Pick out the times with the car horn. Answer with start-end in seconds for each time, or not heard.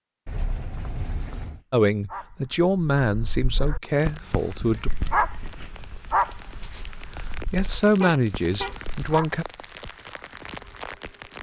0.2-1.6, 8.0-8.8.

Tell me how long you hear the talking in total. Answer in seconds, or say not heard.
5 s.